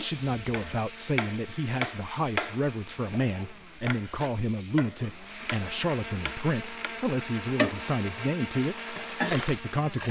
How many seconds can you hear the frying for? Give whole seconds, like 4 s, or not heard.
10 s.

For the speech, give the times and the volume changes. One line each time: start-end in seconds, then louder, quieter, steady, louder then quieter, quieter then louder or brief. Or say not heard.
0.0-10.0 steady.